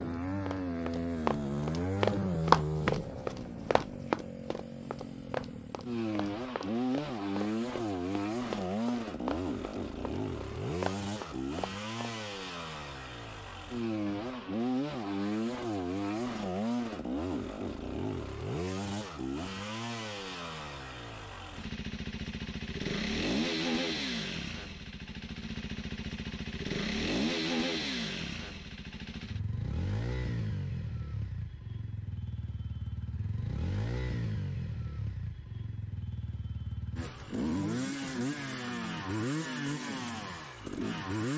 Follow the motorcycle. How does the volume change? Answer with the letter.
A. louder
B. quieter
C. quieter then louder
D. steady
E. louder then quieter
D.